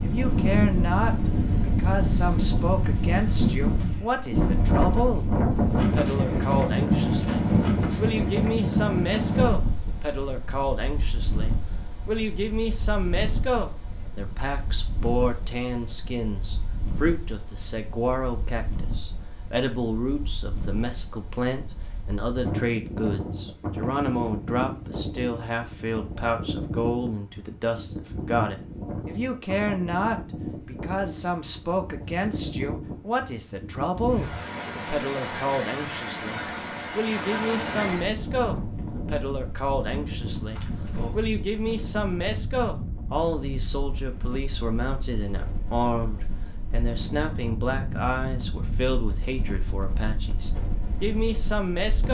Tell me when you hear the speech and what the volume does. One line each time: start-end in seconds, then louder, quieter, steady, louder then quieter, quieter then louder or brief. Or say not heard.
0.0-52.0 steady.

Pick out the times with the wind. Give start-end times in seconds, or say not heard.
0.0-52.0.